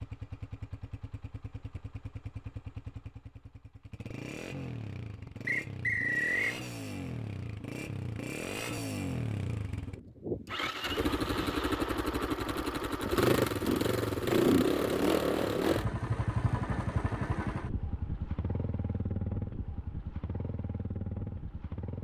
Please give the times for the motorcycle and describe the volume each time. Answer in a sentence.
The motorcycle can be heard from 0.0 to 21.9 s, getting louder then quieter.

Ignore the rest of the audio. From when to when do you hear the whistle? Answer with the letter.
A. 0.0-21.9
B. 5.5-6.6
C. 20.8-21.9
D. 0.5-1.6
B.